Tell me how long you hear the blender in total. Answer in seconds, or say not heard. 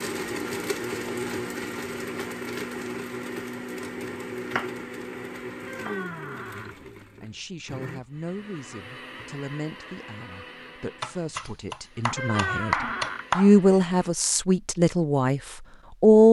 14 s.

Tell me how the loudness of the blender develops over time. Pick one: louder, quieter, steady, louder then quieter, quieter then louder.
quieter.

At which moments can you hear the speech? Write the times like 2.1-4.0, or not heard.
6.5-16.2.